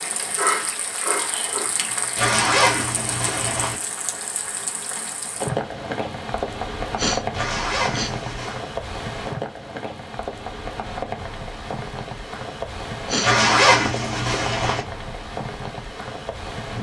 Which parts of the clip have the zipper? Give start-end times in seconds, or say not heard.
2.1-3.8, 7.3-8.7, 13.2-14.8.